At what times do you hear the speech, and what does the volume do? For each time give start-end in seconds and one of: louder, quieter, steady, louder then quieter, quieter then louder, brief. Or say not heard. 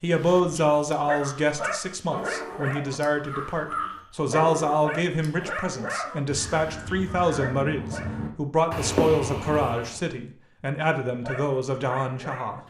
0.0-12.6 steady.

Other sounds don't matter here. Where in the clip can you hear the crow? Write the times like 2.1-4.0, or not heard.
1.1-10.0.